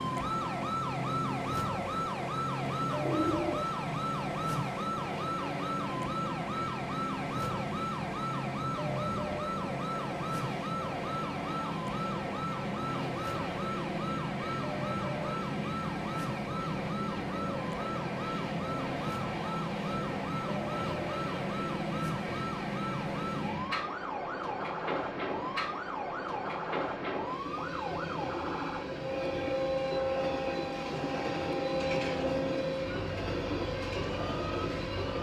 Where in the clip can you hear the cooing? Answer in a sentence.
You can hear the cooing from 2.7 to 3.7 s.